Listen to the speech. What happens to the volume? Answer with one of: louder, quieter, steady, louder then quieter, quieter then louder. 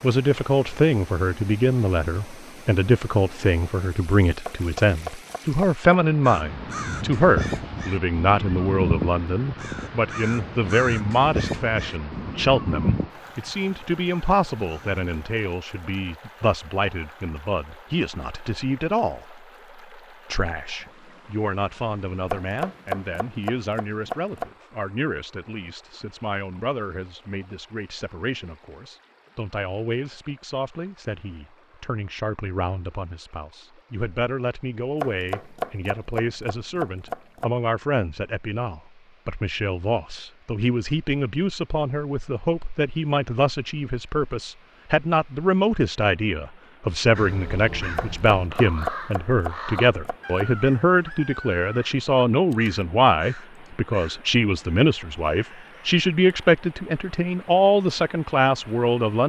quieter then louder.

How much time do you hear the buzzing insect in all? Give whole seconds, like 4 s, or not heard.
not heard.